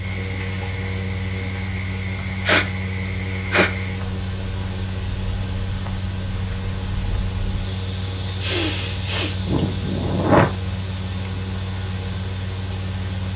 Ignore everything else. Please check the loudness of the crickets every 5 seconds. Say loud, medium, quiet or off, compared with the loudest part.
medium, loud, medium.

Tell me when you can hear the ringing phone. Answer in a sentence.
The ringing phone can't be heard in this clip.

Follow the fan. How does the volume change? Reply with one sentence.
The volume of the fan stays about the same.